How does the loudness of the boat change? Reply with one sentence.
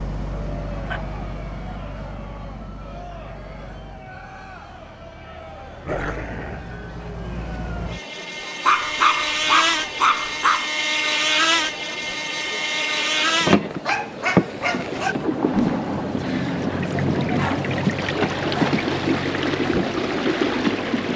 The loudness of the boat goes up.